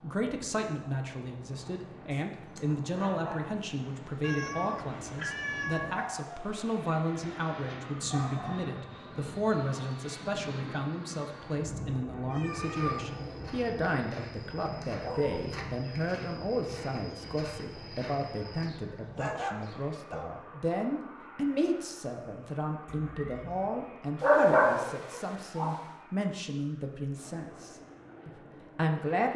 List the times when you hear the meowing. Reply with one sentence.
You can hear the meowing from 4.2 to 6.0 s, from 12.3 to 13.1 s and from 22.9 to 23.8 s.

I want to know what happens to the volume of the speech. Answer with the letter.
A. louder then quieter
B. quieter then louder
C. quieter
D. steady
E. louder
D.